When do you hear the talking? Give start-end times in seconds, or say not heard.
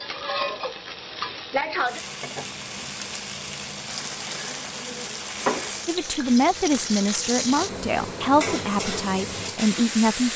5.8-10.3.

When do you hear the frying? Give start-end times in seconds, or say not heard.
0.0-10.3.